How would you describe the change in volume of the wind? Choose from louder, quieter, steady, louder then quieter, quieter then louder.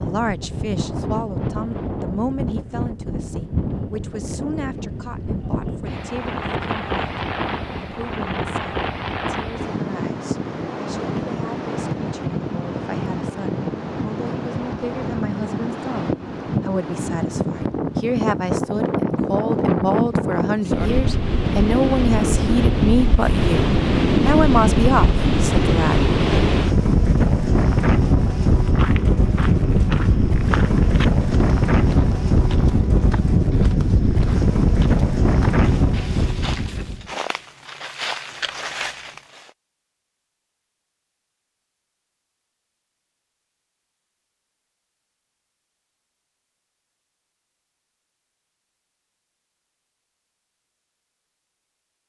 louder.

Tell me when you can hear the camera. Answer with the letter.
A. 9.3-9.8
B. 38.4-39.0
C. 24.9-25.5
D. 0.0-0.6
B.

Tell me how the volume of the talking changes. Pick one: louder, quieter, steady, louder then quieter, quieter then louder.
quieter then louder.